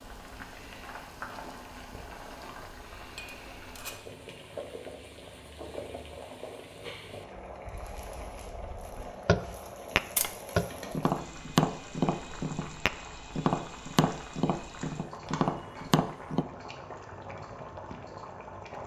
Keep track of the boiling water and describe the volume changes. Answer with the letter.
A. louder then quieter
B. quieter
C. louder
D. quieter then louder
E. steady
E.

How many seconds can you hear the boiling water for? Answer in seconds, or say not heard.
19 s.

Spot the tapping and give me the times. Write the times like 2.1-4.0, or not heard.
7.8-16.4.